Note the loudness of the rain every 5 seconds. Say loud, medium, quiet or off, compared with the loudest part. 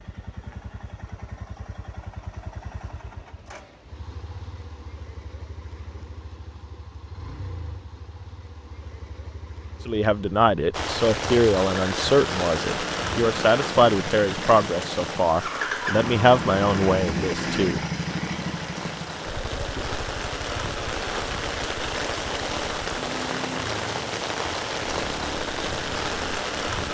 off, off, loud, medium, loud, loud.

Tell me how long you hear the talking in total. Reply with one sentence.
You can hear the talking for 8 seconds altogether.